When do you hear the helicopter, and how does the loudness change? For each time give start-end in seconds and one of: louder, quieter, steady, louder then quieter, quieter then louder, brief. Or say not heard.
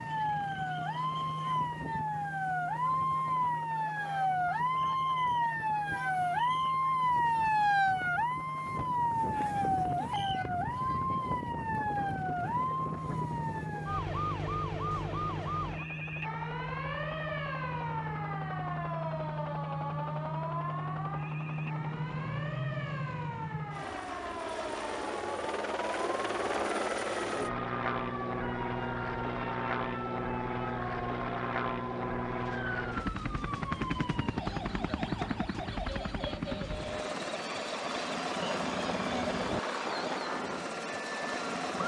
0.0-41.8 louder.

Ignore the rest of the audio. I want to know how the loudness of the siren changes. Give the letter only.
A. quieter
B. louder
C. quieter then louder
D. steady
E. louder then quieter
A.